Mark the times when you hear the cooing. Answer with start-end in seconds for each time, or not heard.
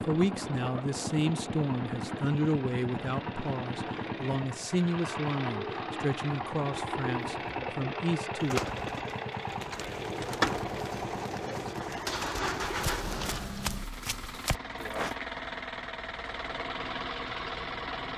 5.4-13.6.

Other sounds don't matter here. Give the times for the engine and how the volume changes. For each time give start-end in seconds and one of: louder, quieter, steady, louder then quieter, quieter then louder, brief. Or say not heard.
0.0-18.1 steady.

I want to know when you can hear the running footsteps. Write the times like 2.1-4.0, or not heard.
12.7-15.2.